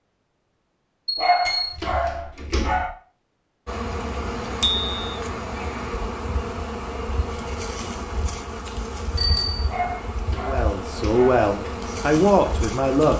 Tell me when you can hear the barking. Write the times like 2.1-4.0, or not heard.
1.1-2.9, 9.7-11.4.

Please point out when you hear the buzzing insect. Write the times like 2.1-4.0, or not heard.
3.6-13.1.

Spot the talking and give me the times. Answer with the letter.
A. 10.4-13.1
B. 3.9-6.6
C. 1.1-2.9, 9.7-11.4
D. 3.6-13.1
A.